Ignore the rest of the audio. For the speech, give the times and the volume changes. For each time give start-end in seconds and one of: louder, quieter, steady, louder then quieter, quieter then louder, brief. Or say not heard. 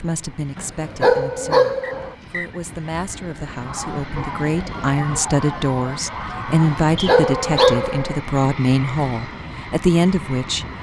0.0-10.7 louder.